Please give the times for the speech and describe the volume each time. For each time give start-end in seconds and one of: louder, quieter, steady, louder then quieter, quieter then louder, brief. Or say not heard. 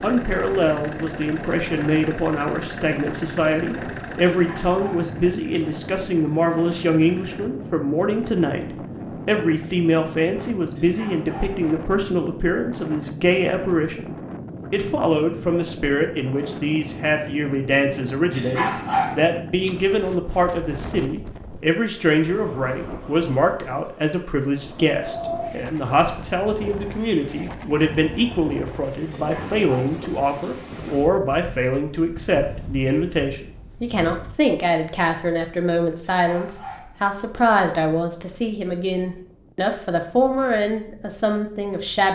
0.0-42.0 steady.